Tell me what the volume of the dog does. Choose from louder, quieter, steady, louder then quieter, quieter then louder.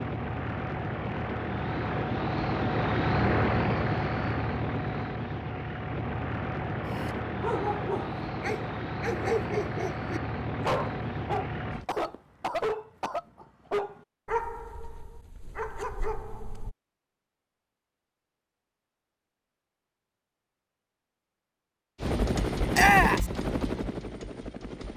quieter.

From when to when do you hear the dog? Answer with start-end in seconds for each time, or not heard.
6.8-16.8.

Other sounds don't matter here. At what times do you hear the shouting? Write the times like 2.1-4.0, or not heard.
22.7-23.2.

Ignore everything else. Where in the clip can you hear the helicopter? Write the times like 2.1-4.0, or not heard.
0.0-11.8, 22.0-24.9.